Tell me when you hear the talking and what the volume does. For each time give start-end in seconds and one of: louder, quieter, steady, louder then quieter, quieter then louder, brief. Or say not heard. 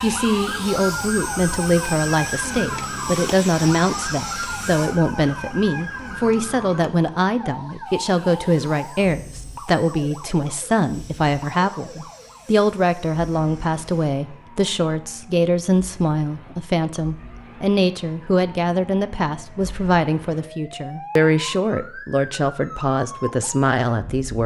0.0-24.4 steady.